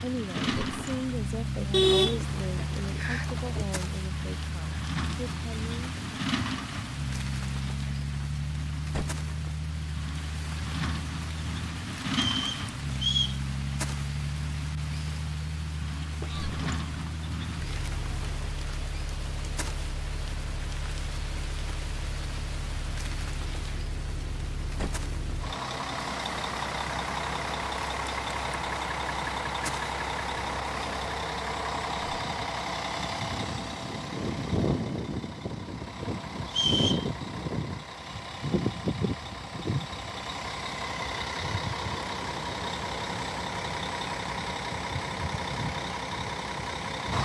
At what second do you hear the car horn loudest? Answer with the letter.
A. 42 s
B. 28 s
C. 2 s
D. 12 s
C.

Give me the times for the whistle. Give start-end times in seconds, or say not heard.
12.1-13.4, 36.5-37.0.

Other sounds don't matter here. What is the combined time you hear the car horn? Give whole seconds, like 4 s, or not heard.
2 s.